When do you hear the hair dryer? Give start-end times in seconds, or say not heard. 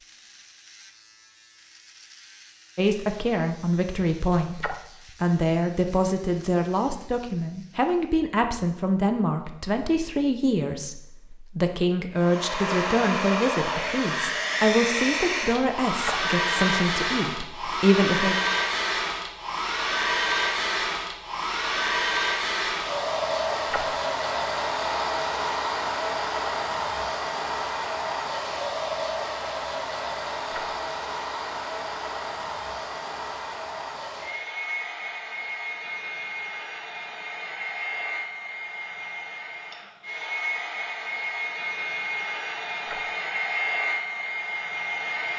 12.2-45.3.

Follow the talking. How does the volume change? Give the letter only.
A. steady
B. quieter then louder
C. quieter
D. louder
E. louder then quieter
A.